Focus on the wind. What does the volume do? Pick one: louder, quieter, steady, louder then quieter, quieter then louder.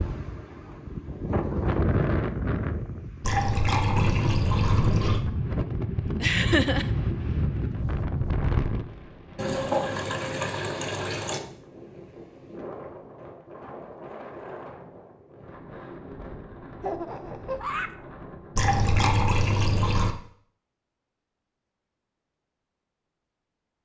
quieter.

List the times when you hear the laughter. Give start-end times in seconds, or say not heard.
6.2-6.9, 16.8-17.9.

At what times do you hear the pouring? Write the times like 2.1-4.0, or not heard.
3.2-5.2, 9.3-11.4, 18.6-20.1.